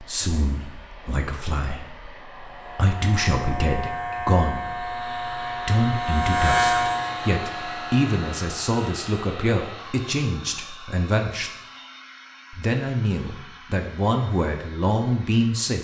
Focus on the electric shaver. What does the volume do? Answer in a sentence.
The loudness of the electric shaver goes up, then down.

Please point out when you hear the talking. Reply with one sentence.
The talking can be heard from 0.0 to 11.5 s and from 12.5 to 15.7 s.